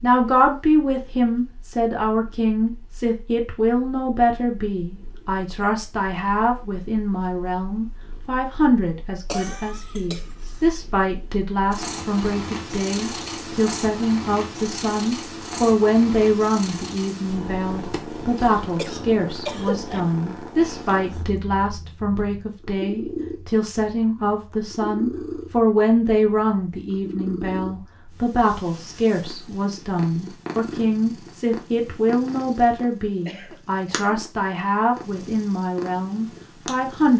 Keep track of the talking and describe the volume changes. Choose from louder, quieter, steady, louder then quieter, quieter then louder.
steady.